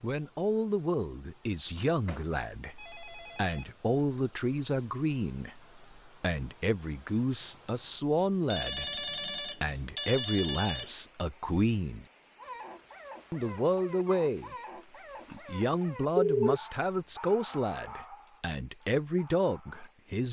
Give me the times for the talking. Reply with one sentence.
You can hear the talking from 0.0 to 12.1 s, from 13.3 to 14.6 s and from 15.3 to 20.2 s.